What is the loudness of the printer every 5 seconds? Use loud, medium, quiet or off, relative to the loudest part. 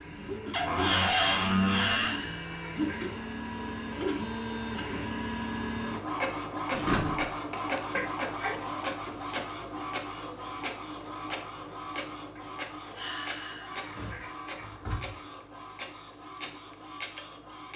loud, loud, medium, medium.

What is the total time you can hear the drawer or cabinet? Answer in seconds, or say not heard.
4 s.